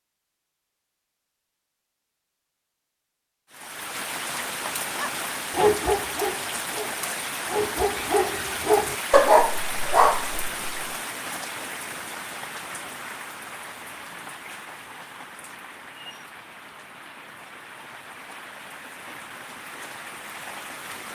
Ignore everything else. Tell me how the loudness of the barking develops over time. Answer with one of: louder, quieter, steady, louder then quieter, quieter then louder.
quieter then louder.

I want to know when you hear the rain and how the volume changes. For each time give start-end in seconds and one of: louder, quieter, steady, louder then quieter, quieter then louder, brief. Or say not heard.
3.5-21.1 quieter.